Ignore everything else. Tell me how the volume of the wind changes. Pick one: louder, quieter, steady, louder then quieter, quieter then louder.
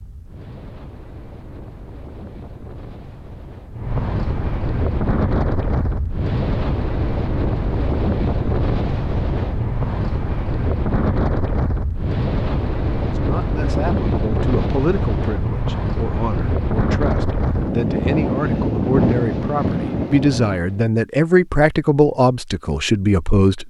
louder.